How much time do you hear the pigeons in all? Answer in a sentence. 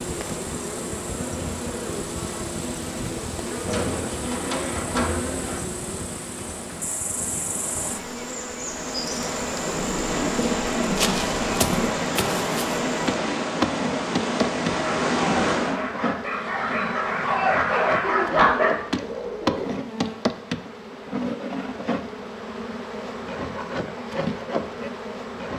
The pigeons can be heard for 6 seconds in total.